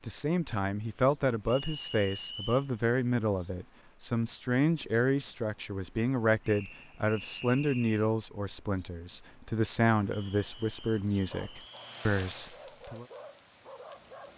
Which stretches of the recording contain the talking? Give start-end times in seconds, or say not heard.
0.0-13.1.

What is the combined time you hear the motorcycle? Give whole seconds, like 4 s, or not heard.
not heard.